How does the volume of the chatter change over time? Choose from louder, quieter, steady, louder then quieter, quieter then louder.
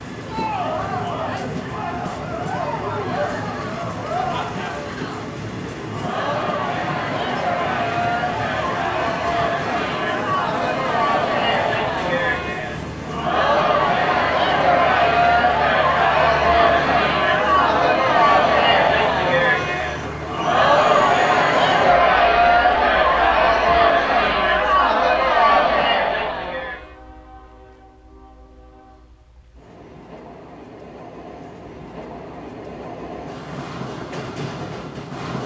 louder.